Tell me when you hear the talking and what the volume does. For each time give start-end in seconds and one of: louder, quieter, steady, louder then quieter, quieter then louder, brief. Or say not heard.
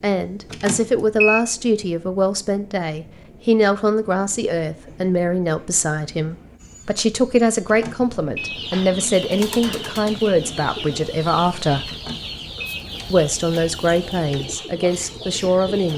0.0-11.9 steady
13.1-15.9 brief.